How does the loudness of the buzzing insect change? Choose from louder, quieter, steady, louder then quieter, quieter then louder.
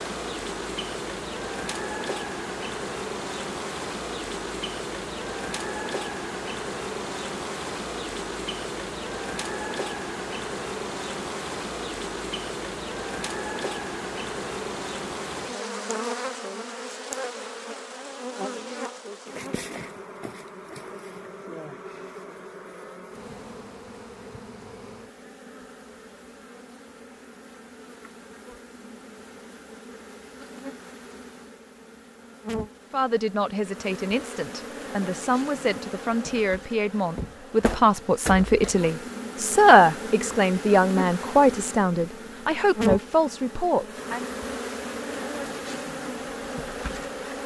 quieter then louder.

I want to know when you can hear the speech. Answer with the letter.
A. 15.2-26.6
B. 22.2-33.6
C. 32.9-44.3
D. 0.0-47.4
C.